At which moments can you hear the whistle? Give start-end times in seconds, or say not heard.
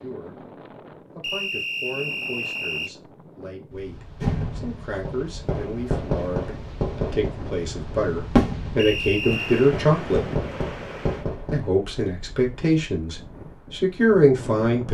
1.2-3.0, 8.8-9.8.